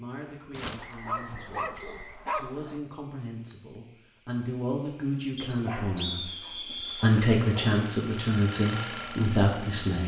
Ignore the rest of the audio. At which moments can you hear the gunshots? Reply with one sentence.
You can't hear the gunshots here.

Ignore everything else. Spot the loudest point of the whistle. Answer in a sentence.
The loudest moment of the whistle is at 6 seconds.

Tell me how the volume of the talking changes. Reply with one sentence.
The volume of the talking goes up.